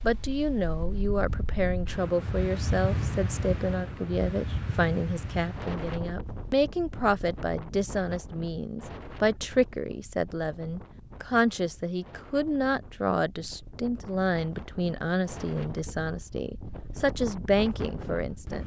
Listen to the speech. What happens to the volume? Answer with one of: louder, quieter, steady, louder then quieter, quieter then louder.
steady.